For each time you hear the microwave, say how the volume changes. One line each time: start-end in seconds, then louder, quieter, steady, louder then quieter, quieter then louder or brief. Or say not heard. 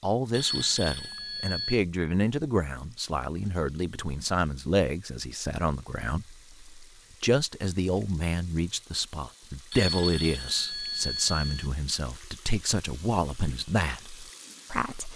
not heard.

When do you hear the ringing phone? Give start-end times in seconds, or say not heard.
0.3-1.8, 9.7-11.7.